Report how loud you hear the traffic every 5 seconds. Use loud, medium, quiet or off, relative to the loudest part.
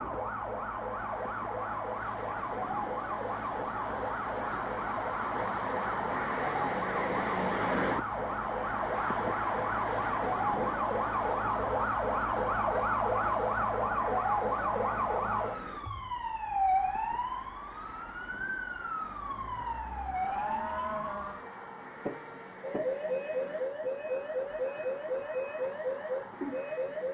medium, loud, medium, quiet, quiet, quiet.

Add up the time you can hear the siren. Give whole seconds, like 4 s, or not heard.
27 s.